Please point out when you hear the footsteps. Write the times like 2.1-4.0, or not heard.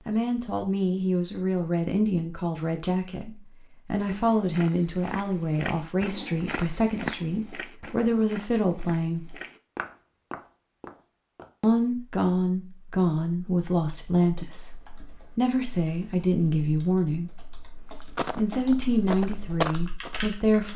4.0-11.5, 18.0-20.7.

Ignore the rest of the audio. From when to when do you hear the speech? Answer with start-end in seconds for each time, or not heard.
0.1-9.3, 11.6-17.6, 18.4-20.7.